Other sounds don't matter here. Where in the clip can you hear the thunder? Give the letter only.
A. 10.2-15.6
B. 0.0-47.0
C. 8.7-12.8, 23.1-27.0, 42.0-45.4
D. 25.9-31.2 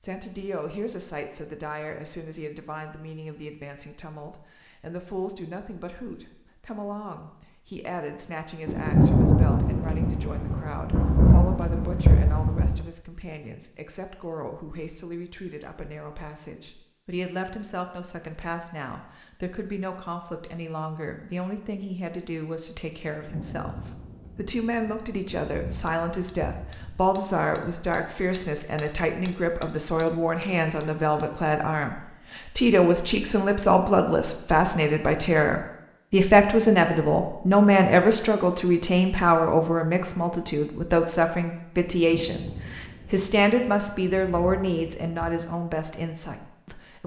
C.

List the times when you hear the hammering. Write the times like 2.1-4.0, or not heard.
25.9-31.2.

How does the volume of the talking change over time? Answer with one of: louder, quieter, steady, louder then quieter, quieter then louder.
louder.